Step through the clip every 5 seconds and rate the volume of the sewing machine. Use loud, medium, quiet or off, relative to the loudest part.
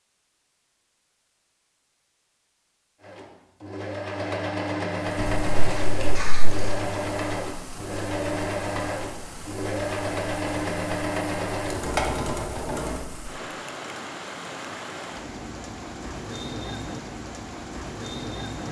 loud, loud, loud, off.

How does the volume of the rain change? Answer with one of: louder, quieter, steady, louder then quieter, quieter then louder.
louder.